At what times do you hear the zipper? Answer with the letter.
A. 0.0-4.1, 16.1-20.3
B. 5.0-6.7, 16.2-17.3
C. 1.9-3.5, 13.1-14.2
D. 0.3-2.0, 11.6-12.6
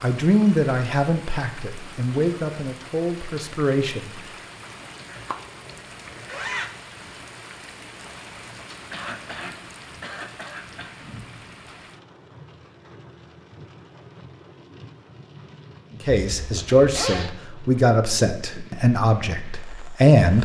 B.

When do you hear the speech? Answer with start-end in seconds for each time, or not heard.
0.0-4.1, 16.1-20.3.